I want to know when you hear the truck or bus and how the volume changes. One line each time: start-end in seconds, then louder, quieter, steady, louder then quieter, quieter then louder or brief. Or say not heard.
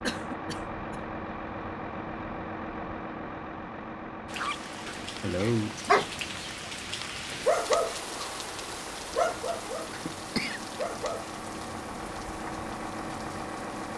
0.0-13.9 quieter then louder.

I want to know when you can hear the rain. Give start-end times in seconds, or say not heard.
4.2-13.9.